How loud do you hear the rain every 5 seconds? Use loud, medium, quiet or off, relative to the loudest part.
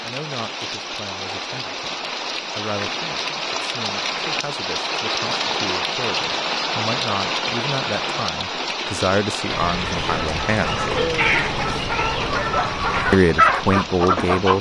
loud, loud, medium.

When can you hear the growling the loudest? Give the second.
11 s.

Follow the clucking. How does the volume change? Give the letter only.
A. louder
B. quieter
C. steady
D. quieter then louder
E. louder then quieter
A.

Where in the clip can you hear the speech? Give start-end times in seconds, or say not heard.
0.0-1.9, 2.5-10.8, 13.1-14.5.